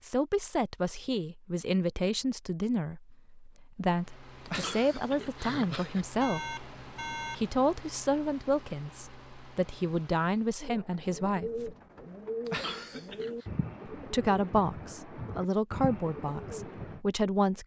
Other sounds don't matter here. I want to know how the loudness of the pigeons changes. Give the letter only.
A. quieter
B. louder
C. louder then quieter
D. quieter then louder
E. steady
E.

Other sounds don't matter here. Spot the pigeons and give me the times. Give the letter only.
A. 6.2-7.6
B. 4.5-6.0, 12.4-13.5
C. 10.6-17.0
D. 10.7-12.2
C.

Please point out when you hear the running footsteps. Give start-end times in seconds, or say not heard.
not heard.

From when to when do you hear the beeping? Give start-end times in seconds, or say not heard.
6.2-7.6.